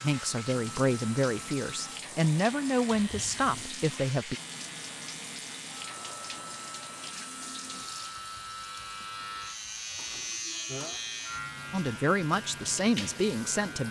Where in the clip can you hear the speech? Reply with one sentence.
You can hear the speech from 0.0 to 4.3 s and from 11.7 to 13.8 s.